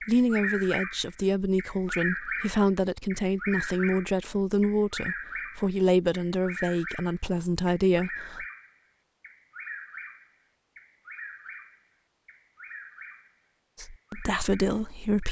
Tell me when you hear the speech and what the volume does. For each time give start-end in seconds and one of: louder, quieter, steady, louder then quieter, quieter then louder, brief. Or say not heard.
0.1-8.4 steady
13.8-15.2 brief.